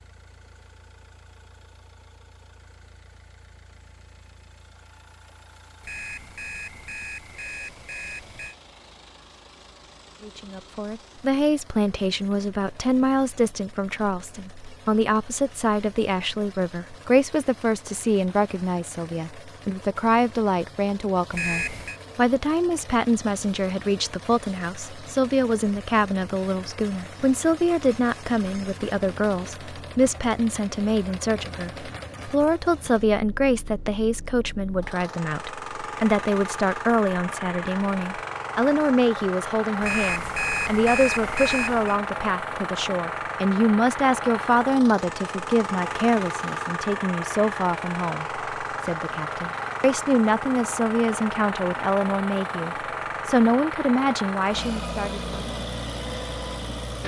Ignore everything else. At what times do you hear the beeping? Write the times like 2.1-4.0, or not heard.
5.8-8.6, 21.3-22.0, 39.8-42.0.